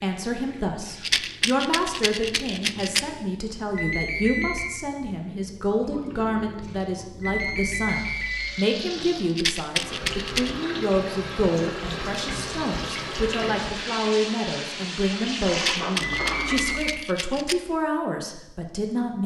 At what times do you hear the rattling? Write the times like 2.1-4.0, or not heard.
1.0-3.0, 9.3-10.5, 15.6-17.6.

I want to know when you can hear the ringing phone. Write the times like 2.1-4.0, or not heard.
3.8-4.7, 7.2-8.6, 16.1-17.0.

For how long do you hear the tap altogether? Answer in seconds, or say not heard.
17 s.